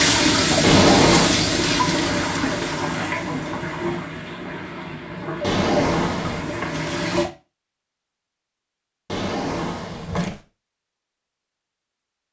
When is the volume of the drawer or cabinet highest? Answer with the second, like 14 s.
1 s.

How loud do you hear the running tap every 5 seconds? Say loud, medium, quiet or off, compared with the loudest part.
loud, medium, off.